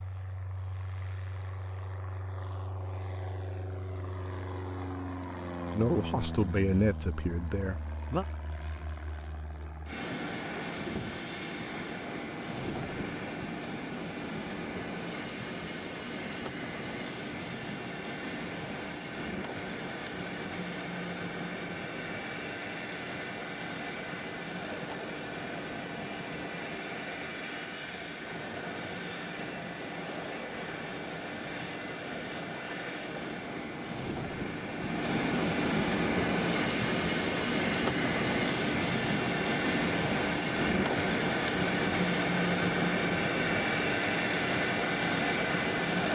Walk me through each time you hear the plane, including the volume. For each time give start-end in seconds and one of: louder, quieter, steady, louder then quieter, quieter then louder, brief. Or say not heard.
0.0-46.0 louder.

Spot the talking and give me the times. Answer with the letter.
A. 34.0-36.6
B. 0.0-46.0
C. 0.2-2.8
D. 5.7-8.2
D.